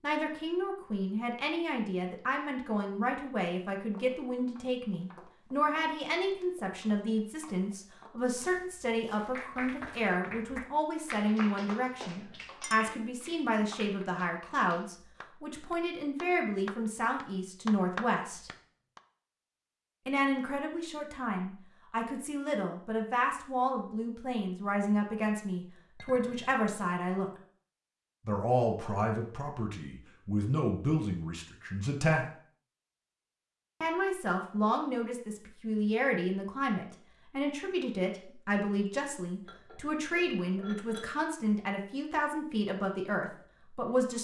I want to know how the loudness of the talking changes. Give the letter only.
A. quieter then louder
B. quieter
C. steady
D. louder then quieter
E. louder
C.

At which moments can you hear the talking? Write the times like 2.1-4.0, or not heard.
0.0-18.5, 20.1-27.3, 28.2-32.2, 33.8-44.1.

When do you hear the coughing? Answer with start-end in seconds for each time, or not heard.
not heard.